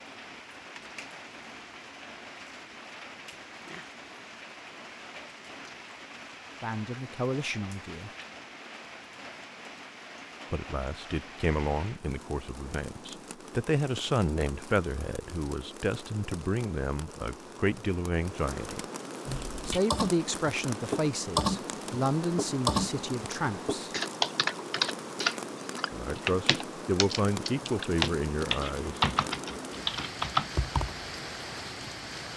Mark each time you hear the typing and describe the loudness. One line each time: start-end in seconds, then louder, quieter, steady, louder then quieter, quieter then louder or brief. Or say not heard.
19.2-31.0 steady.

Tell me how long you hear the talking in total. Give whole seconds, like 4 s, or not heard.
17 s.